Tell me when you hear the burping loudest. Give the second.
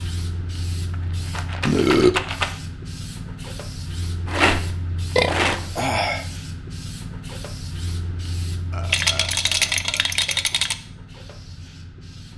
2 s.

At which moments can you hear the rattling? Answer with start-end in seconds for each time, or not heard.
0.8-2.5, 4.2-6.1, 8.8-10.8.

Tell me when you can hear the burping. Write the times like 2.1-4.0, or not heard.
1.6-2.2, 5.2-6.2, 8.7-10.4.